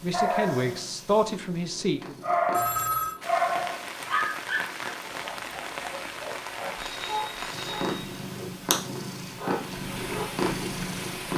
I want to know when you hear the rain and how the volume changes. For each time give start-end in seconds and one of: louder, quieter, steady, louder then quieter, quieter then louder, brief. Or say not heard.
3.2-11.3 quieter then louder.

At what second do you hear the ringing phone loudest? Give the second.
3 s.